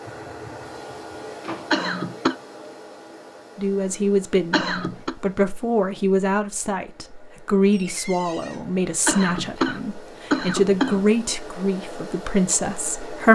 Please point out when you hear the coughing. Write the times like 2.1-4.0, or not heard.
1.7-2.4, 4.5-5.2, 9.1-11.1.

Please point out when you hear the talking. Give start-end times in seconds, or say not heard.
3.5-13.3.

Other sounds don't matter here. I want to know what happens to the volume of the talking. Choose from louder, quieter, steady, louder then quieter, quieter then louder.
steady.